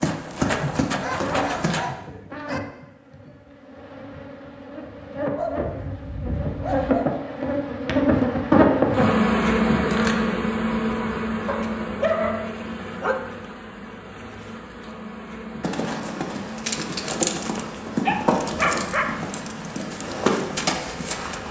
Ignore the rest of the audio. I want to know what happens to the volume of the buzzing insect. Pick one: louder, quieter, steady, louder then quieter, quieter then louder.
louder then quieter.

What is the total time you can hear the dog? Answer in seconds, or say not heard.
7 s.